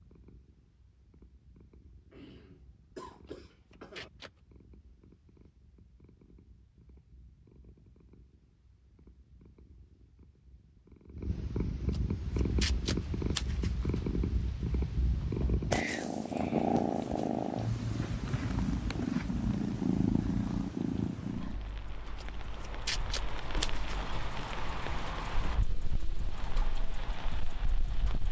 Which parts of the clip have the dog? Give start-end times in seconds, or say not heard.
not heard.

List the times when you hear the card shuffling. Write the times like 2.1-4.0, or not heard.
3.2-4.4, 11.9-13.7, 22.2-23.9.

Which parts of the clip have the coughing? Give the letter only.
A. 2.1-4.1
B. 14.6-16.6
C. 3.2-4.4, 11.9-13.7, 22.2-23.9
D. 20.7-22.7
A.